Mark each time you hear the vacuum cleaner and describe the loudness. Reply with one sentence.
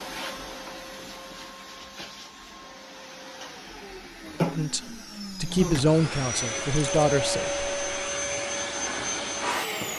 The vacuum cleaner can be heard from 0.0 to 9.9 s, getting louder.